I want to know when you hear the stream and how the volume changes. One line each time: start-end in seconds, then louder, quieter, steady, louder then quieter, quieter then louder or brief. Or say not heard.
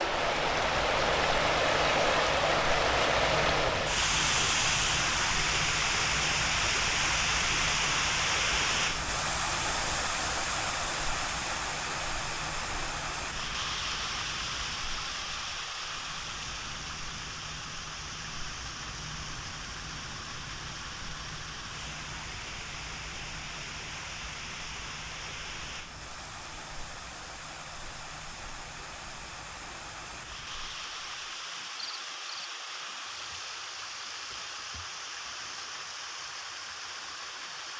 0.0-37.7 quieter.